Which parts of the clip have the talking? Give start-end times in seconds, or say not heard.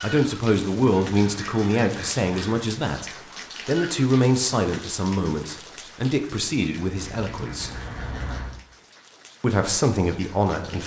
0.0-7.7, 9.4-10.8.